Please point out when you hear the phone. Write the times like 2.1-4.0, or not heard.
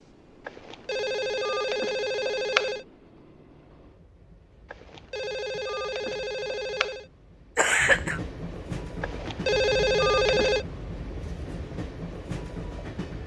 0.5-2.8, 4.7-7.0, 9.0-10.7.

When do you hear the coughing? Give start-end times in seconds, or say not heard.
7.5-8.2.